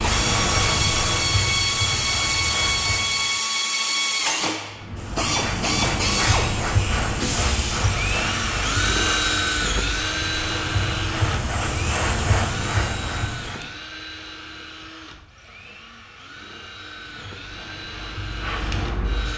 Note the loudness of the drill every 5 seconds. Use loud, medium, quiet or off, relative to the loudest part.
loud, loud, medium, quiet.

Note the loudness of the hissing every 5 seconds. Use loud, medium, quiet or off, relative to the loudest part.
loud, loud, loud, medium.